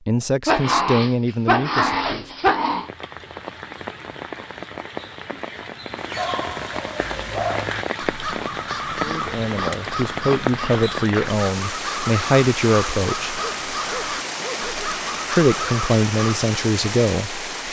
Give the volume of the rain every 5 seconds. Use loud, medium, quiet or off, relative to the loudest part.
medium, loud, loud, loud.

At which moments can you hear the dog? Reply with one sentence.
The dog can be heard from 0.5 to 2.9 s, from 6.2 to 7.7 s and from 13.2 to 15.8 s.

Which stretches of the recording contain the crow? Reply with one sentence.
The crow can be heard from 7.0 to 16.4 s.